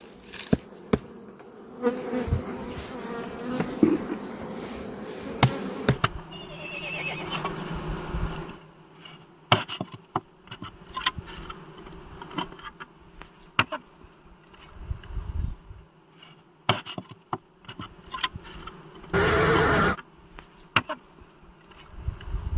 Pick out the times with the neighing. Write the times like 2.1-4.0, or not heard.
6.3-7.3, 19.1-19.9.